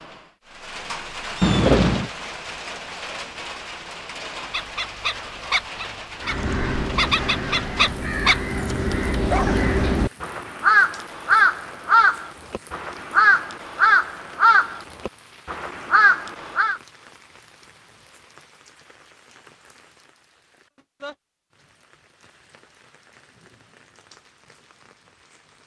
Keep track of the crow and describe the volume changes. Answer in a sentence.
The volume of the crow goes up.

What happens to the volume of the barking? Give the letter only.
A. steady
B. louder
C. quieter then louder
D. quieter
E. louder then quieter
C.